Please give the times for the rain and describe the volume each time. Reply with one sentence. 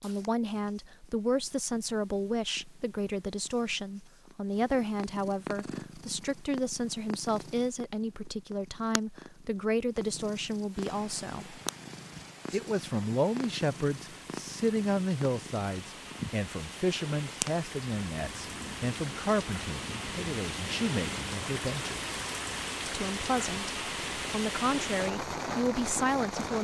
You can hear the rain from 10.7 to 26.5 s, getting louder.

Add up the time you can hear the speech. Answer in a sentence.
You can hear the speech for 25 seconds altogether.